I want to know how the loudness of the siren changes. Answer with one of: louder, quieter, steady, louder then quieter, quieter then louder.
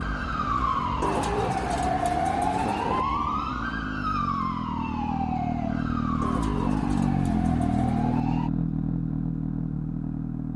quieter.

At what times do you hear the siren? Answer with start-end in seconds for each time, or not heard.
0.0-8.5.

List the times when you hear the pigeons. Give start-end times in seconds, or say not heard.
1.0-3.0, 6.2-8.2.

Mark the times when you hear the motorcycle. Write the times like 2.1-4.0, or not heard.
0.0-10.5.